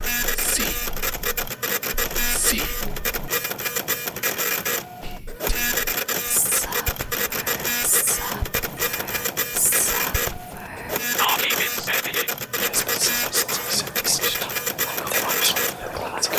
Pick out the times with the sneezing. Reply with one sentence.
The sneezing can't be heard in this clip.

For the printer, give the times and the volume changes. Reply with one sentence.
The printer can be heard from 0.0 to 16.3 s, at a steady volume.